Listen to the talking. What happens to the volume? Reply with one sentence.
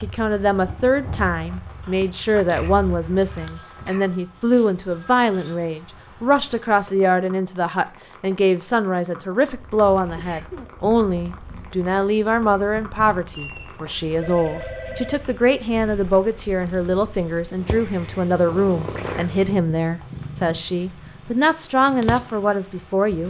The volume of the talking stays about the same.